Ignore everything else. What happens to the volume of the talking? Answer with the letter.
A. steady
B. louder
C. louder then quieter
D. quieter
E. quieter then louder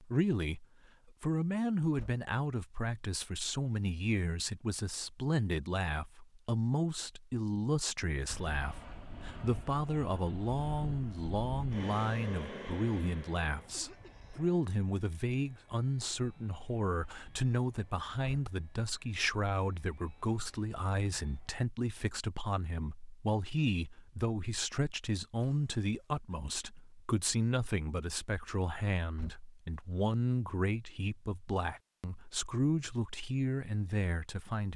A.